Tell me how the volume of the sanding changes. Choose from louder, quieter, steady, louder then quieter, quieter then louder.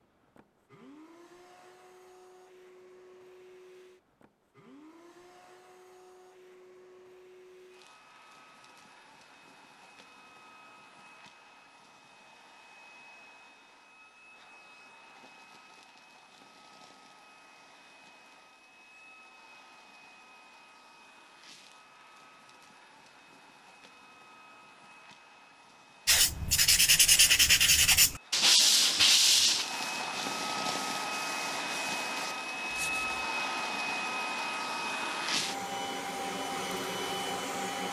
quieter.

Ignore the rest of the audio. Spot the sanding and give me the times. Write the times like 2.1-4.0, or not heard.
26.1-33.2.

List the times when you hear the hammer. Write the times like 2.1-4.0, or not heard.
not heard.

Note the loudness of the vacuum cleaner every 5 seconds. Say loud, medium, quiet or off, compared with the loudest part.
quiet, quiet, quiet, quiet, quiet, medium, loud, loud.